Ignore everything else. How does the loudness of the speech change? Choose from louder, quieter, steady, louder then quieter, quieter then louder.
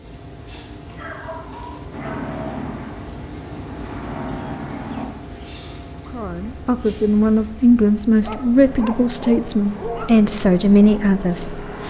steady.